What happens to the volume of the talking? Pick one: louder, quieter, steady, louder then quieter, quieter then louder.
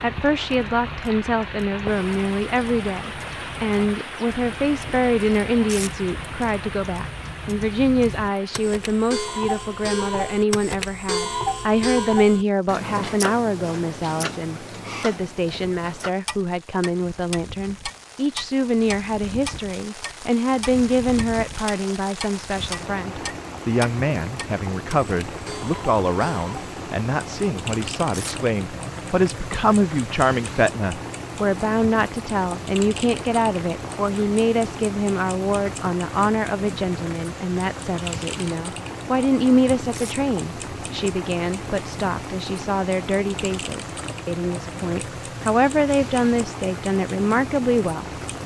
steady.